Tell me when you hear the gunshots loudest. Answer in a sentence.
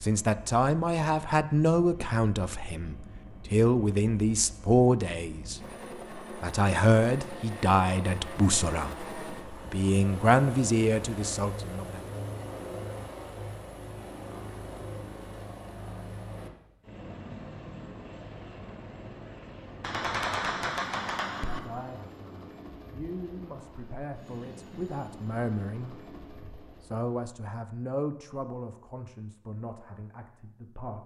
The volume of the gunshots peaks at 20 seconds.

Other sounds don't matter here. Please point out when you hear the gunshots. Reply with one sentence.
You can hear the gunshots from 19.8 to 21.6 s.